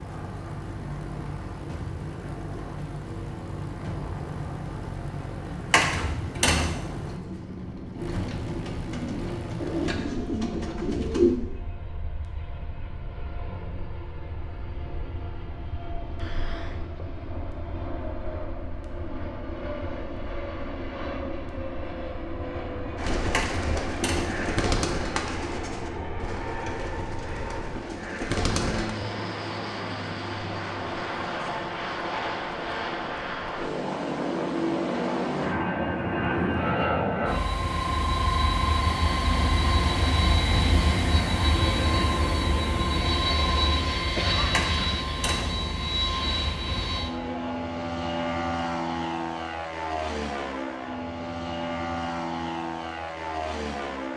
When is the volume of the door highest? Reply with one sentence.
The volume of the door peaks at 6 seconds.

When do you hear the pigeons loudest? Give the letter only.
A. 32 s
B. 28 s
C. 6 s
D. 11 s
D.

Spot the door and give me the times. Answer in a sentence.
You can hear the door from 5.7 to 6.8 s, from 23.3 to 24.4 s and from 44.5 to 45.5 s.